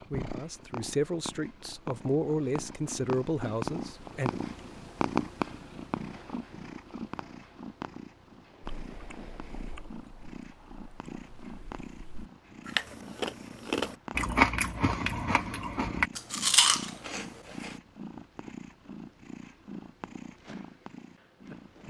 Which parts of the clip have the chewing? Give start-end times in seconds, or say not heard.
8.8-17.8.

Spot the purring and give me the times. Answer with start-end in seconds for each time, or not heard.
0.0-21.8.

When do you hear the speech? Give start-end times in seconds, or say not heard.
0.1-4.3.